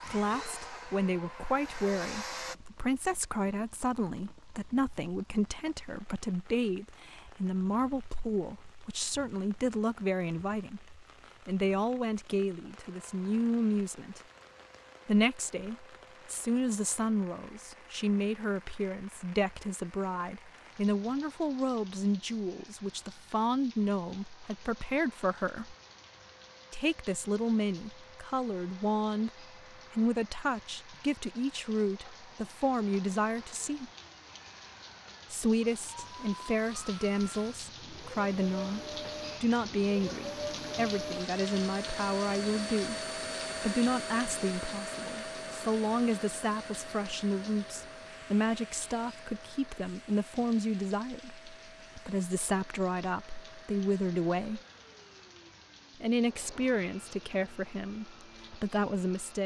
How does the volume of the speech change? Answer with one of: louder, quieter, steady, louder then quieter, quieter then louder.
steady.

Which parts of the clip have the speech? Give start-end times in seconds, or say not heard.
0.1-14.2, 15.1-25.8, 26.7-33.9, 35.3-54.6, 56.0-59.4.